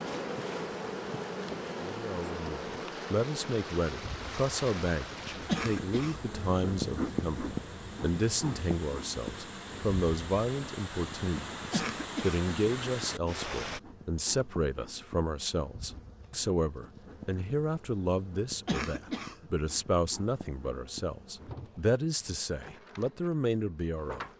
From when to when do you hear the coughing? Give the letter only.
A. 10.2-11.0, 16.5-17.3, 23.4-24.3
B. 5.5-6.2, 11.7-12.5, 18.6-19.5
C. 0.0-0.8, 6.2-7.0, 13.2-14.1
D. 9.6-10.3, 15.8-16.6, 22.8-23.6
B.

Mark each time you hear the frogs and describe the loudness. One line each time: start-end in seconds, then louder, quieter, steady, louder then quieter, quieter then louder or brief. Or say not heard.
not heard.